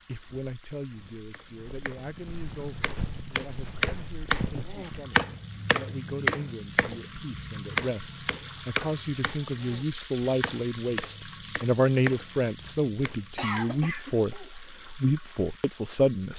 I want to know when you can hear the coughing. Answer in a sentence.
The coughing can be heard from 13.3 to 14.6 s.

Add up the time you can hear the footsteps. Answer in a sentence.
You can hear the footsteps for 5 seconds altogether.